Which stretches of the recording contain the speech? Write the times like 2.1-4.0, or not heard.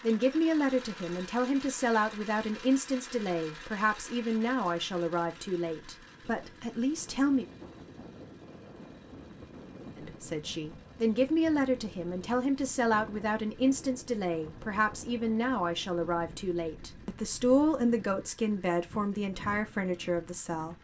0.0-7.5, 9.9-20.7.